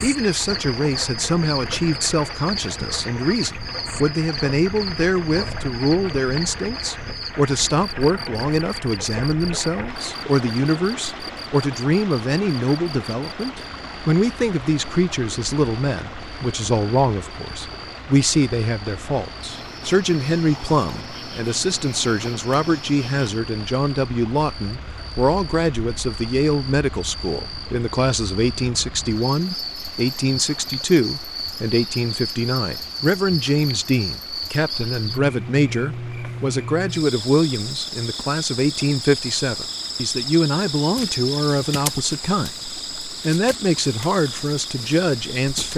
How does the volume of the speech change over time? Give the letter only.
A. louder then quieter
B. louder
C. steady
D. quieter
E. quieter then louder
C.